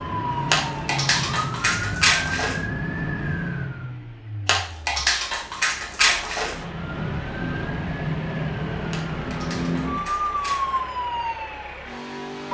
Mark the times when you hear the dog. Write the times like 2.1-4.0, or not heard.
0.5-2.6, 4.5-6.6, 8.9-10.8.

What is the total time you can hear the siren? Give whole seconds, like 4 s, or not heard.
10 s.